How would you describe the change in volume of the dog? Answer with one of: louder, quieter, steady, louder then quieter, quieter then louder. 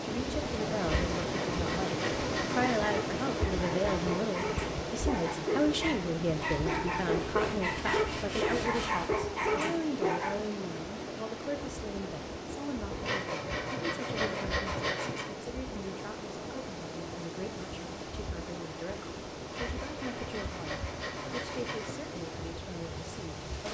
louder.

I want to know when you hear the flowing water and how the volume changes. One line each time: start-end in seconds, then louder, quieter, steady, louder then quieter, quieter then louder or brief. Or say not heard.
0.0-23.6 quieter.